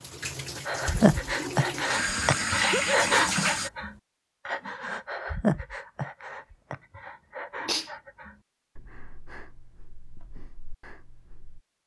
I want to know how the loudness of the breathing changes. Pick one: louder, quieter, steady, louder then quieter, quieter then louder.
quieter.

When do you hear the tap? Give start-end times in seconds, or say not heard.
0.0-3.7.